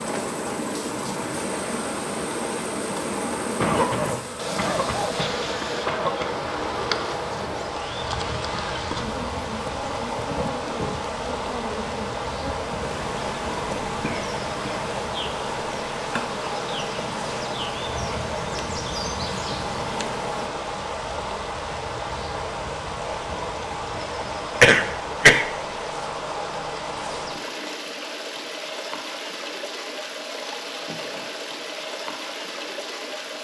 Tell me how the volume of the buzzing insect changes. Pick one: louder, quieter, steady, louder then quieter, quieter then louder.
steady.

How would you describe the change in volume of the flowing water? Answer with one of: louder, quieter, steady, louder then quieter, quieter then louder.
steady.